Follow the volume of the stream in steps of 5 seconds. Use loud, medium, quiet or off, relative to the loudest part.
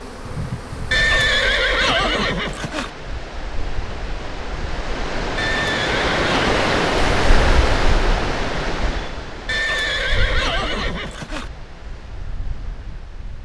quiet, loud, quiet.